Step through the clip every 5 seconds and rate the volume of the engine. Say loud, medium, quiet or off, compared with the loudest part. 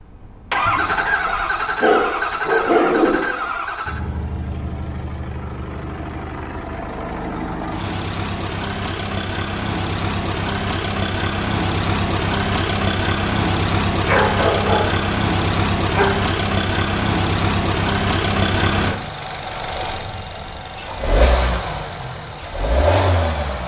loud, medium, loud, loud, loud.